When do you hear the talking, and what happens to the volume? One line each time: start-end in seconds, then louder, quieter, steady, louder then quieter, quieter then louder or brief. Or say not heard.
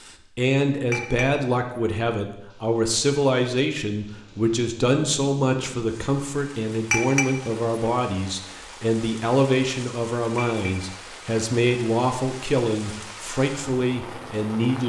0.0-14.8 steady.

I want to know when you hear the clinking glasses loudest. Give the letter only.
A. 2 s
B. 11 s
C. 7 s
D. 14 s
C.